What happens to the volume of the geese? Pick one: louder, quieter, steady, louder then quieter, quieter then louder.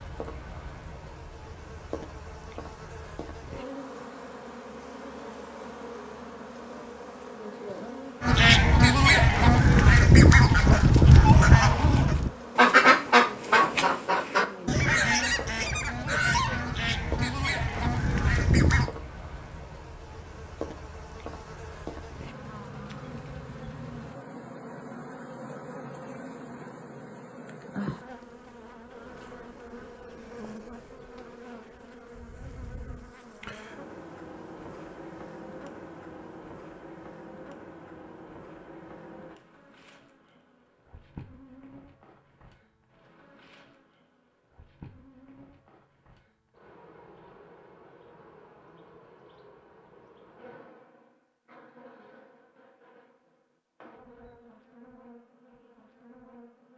quieter.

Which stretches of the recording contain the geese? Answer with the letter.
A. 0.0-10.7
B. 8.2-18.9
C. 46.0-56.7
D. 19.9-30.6
B.